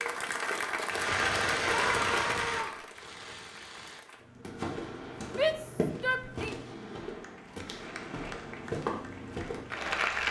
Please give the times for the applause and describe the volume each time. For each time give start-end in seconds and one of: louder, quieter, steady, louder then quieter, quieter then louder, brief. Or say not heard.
0.0-4.2 quieter
7.2-10.2 brief.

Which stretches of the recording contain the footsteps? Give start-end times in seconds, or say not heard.
4.2-9.8.